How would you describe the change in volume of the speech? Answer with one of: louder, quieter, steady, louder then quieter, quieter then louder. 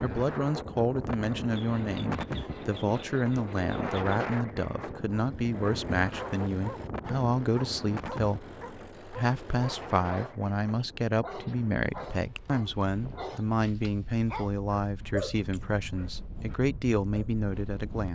steady.